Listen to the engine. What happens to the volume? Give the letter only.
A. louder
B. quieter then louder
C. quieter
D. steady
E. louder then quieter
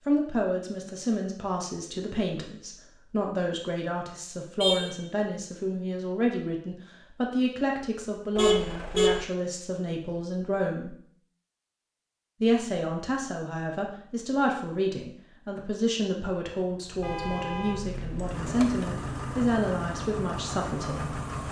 A.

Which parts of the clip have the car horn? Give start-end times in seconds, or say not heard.
4.6-5.0, 8.3-9.2, 17.0-18.9.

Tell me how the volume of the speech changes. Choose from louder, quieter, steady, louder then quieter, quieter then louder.
steady.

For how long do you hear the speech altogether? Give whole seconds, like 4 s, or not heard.
20 s.